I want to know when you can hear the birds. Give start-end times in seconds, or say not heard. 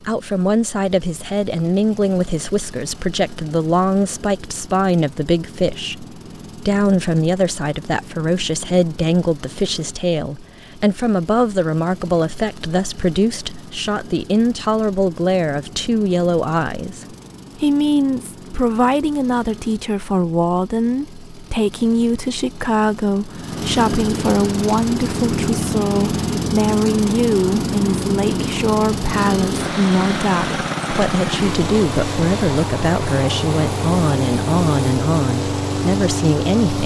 not heard.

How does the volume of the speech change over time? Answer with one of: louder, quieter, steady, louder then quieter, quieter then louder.
steady.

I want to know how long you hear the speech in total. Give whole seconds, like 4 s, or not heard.
37 s.